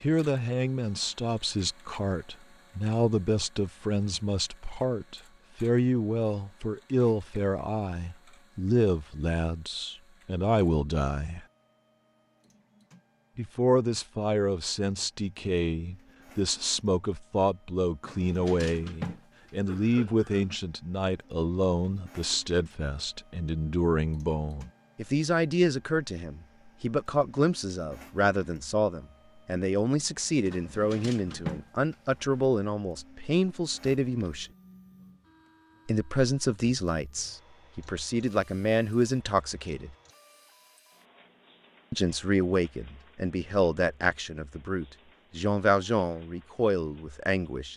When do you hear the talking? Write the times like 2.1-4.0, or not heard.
0.0-11.4, 13.3-34.5, 35.9-40.0, 41.9-47.7.